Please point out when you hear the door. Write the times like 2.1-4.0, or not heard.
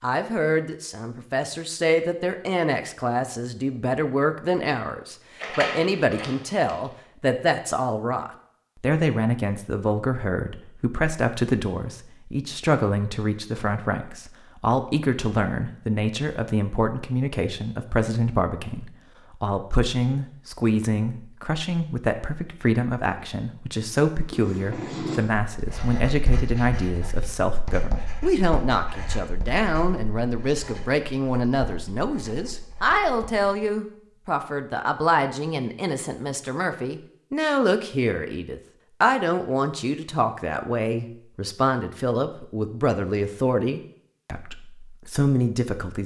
5.3-6.8.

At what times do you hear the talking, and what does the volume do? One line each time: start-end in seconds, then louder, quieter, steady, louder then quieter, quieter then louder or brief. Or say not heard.
0.0-46.0 steady.